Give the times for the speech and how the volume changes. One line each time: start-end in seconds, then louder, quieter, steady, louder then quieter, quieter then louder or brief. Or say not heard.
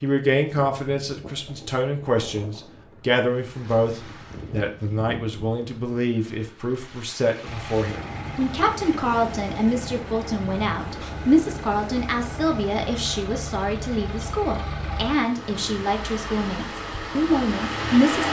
0.0-18.2 steady.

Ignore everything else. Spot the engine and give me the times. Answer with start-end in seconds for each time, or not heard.
7.5-18.2.